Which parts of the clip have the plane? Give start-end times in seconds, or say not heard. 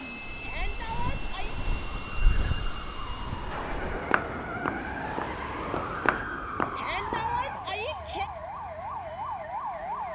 0.0-6.2.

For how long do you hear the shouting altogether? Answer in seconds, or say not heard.
3 s.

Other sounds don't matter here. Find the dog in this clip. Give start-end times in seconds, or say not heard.
not heard.